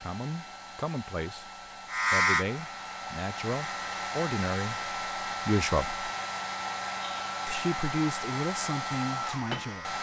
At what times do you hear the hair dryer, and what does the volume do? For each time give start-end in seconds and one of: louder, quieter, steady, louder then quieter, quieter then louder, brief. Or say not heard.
0.0-9.9 louder.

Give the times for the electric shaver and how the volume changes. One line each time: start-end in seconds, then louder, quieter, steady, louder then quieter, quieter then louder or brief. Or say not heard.
1.9-9.9 quieter.